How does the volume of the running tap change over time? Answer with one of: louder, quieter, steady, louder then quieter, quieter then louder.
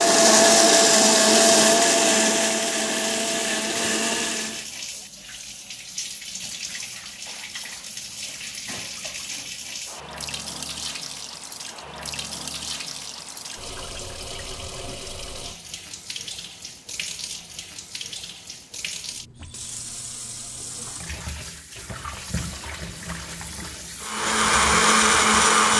steady.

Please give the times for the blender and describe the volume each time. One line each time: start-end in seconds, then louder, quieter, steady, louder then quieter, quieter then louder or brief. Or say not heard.
0.0-4.7 quieter
24.0-25.7 brief.